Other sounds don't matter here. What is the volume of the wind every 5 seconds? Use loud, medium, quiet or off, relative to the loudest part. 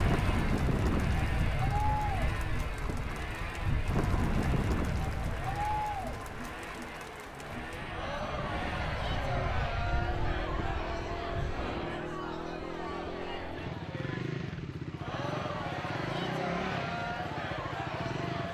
loud, medium, medium, off.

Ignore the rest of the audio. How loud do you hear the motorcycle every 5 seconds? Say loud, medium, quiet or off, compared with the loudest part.
loud, medium, loud, loud.